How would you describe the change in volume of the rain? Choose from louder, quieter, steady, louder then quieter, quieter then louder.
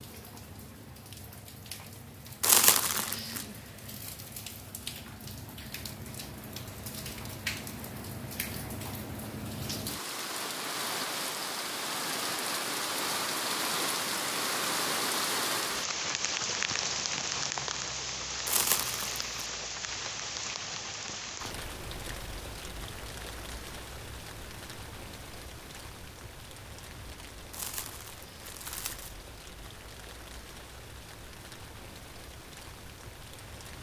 louder then quieter.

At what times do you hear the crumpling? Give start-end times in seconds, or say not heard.
2.4-3.5, 18.4-19.2, 27.5-29.1.